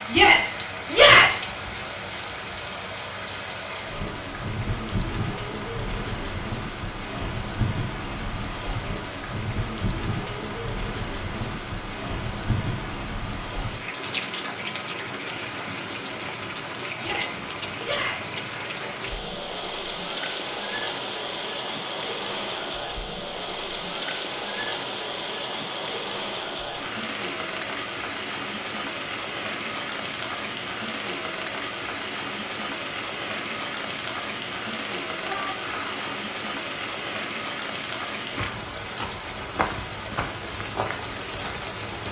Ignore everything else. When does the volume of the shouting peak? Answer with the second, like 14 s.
1 s.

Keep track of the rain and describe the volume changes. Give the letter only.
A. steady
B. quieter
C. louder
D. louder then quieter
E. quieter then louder
A.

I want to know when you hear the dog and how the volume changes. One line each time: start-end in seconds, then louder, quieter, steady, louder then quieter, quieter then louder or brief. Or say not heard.
not heard.